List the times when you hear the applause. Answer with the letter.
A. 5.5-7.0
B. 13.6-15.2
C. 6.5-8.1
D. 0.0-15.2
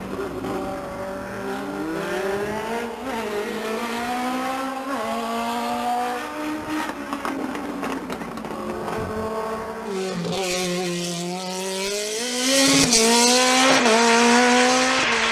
B.